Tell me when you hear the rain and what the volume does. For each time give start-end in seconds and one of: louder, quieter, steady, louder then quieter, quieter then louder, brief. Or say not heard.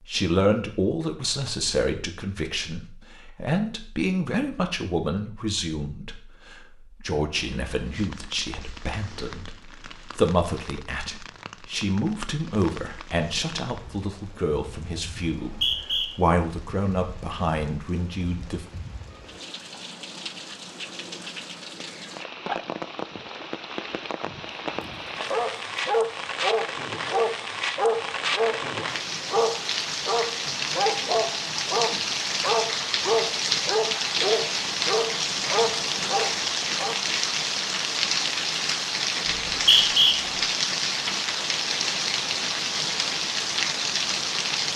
7.3-44.7 louder.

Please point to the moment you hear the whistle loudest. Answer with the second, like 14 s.
40 s.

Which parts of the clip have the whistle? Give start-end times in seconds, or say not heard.
15.4-16.1, 39.2-40.1.